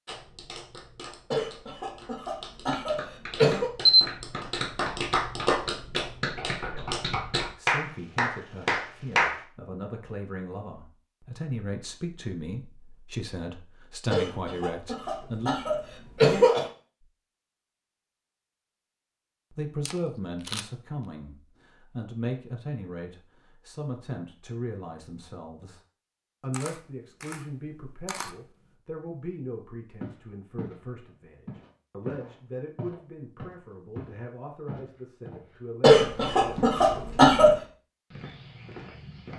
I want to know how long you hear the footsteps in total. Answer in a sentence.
The footsteps can be heard for 8 seconds in total.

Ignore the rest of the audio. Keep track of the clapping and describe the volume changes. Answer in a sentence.
The loudness of the clapping goes up.